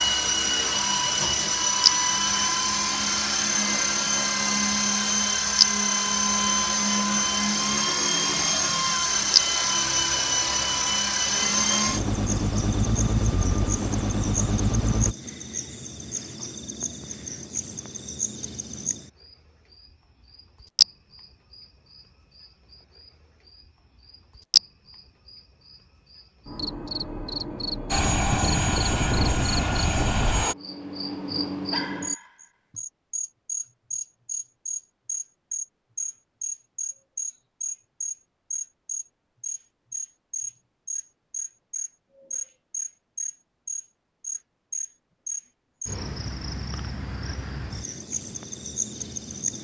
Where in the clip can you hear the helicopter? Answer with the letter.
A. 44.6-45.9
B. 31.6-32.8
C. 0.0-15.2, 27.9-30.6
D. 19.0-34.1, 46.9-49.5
C.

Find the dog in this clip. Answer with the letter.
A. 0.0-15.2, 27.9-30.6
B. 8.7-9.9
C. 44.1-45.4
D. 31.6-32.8
D.